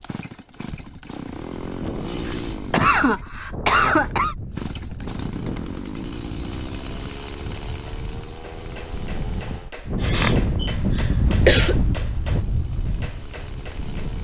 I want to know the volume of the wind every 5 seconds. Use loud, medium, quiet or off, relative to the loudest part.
medium, medium, loud.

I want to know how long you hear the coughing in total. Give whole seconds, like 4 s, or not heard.
4 s.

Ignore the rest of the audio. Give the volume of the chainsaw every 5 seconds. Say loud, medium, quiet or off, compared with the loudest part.
loud, loud, medium.